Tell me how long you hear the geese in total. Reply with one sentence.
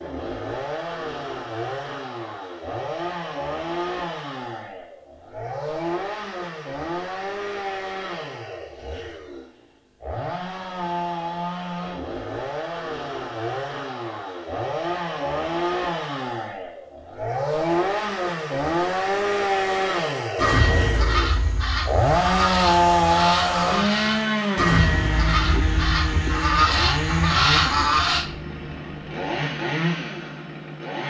You can hear the geese for 8 seconds altogether.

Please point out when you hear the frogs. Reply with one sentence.
The frogs can't be heard in this clip.